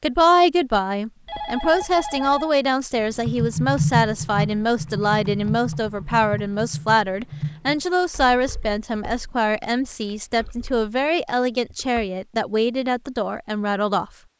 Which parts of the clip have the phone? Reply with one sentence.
You can hear the phone from 1.2 to 2.5 s.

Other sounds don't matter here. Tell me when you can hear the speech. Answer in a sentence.
You can hear the speech from 0.0 to 14.1 s.